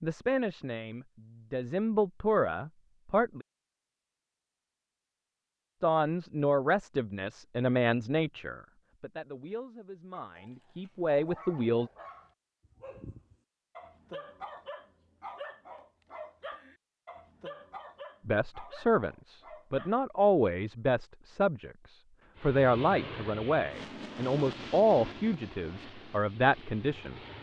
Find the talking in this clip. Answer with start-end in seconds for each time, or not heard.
0.0-3.5, 5.8-11.9, 18.2-27.1.